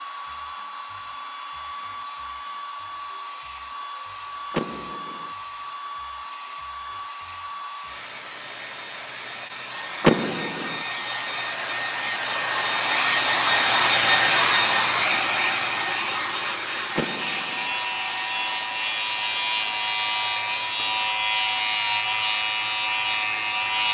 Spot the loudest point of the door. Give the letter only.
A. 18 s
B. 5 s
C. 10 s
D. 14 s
C.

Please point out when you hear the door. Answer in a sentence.
The door can be heard from 4.5 to 5.3 s, from 10.0 to 10.8 s and from 16.9 to 17.7 s.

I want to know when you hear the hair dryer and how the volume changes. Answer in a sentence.
You can hear the hair dryer from 0.0 to 23.8 s, getting louder then quieter.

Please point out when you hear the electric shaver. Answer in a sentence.
You can hear the electric shaver from 17.1 to 23.8 s.